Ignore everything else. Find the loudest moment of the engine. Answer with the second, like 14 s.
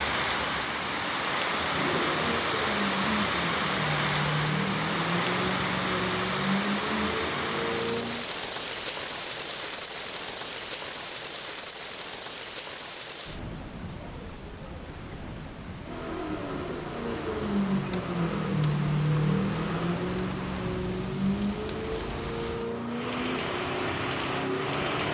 19 s.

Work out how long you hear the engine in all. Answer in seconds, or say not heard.
17 s.